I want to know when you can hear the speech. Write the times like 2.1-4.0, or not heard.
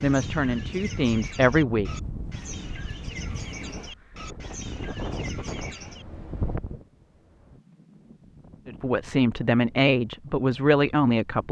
0.0-1.9, 8.7-11.4.